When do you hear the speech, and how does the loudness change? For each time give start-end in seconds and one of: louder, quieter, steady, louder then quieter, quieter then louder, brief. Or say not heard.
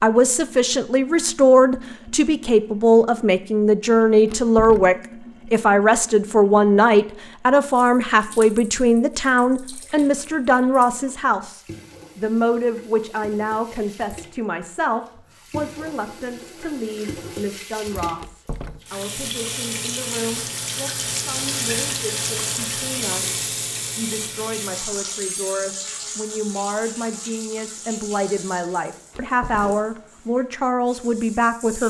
0.0-31.8 quieter then louder.